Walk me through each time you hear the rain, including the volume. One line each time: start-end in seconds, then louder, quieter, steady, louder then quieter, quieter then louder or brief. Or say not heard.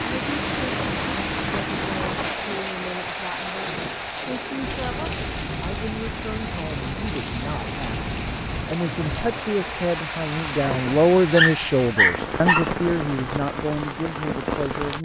0.0-15.0 steady.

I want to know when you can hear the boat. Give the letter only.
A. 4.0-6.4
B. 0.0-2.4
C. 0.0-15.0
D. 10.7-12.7
B.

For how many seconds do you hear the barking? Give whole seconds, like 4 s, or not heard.
2 s.